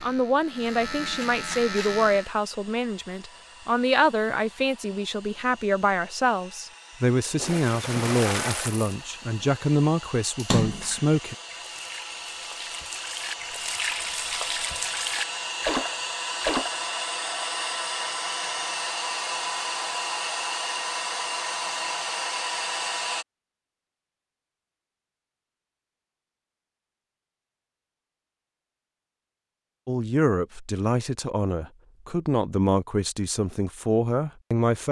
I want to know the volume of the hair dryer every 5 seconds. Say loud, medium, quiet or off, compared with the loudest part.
quiet, quiet, medium, loud, loud, off, off.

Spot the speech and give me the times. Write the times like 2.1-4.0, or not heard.
0.0-11.3, 29.9-34.8.